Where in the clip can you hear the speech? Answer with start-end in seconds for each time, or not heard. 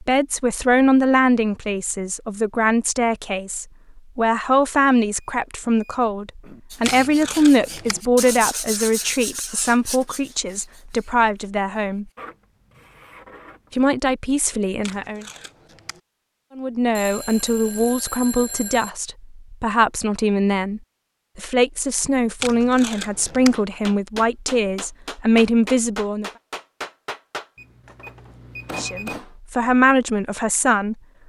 0.0-12.1, 13.7-15.2, 16.6-26.3, 28.8-30.9.